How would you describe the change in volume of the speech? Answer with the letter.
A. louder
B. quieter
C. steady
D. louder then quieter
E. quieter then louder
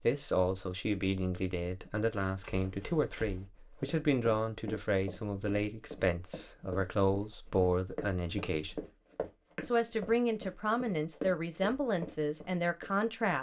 C.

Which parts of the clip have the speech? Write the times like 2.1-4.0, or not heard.
0.0-8.8, 9.6-13.3.